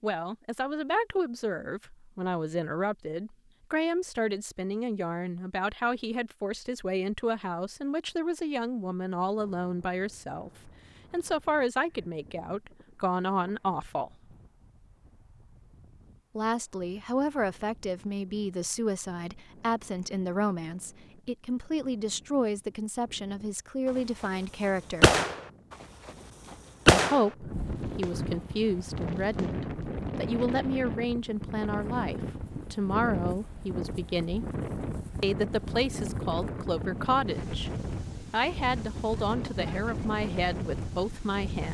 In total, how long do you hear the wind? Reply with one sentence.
You can hear the wind for 32 seconds altogether.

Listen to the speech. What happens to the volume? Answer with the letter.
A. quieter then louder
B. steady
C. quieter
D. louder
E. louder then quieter
B.